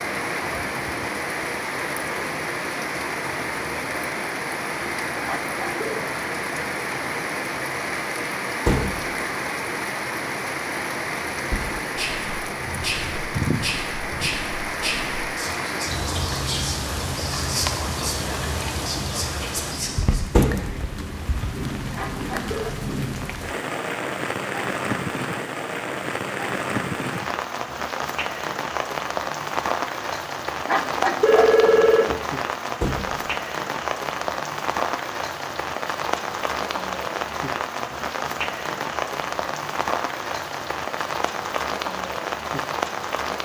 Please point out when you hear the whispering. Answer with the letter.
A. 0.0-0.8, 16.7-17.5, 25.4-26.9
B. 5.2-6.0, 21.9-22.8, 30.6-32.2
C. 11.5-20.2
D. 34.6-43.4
C.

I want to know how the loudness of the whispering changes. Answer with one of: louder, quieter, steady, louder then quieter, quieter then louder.
steady.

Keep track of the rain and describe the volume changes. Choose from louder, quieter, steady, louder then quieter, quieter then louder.
steady.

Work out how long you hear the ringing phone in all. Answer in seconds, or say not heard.
3 s.